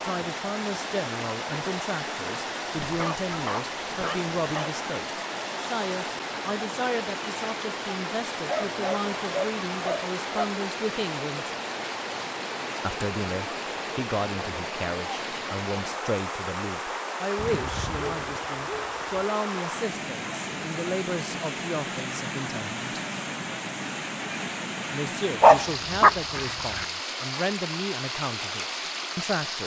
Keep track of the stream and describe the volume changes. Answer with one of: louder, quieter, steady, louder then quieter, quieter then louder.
steady.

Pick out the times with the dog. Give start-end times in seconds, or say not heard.
2.8-4.7, 8.4-10.4, 17.4-19.4, 25.4-26.9.